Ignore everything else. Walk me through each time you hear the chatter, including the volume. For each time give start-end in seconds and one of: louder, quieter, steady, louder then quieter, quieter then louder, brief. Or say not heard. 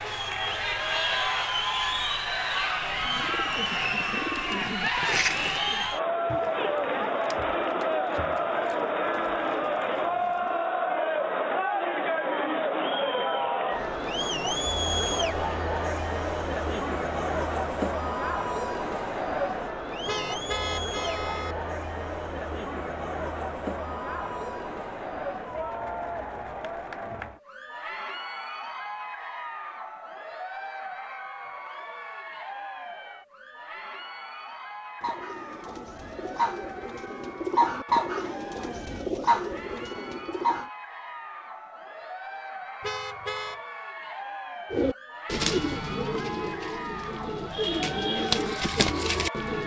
0.0-49.6 quieter.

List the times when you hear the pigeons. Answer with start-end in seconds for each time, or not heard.
3.0-10.7, 35.0-40.7, 44.7-49.6.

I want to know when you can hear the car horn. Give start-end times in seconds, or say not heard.
0.0-1.2, 20.1-21.6, 42.8-43.6.